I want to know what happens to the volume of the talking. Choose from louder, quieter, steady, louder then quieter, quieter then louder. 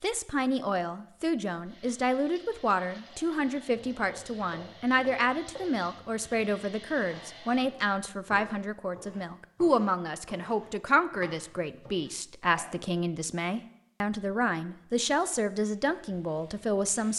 steady.